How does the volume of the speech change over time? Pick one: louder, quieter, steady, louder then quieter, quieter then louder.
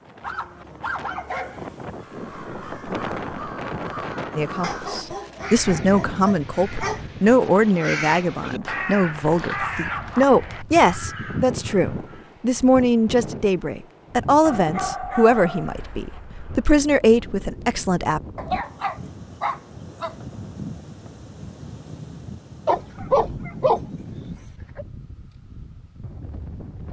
steady.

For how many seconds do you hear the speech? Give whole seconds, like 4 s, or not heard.
14 s.